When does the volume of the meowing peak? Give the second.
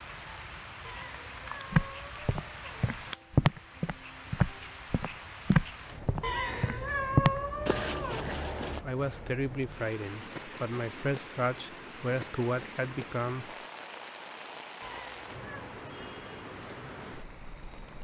7 s.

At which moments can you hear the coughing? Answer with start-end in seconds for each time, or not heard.
not heard.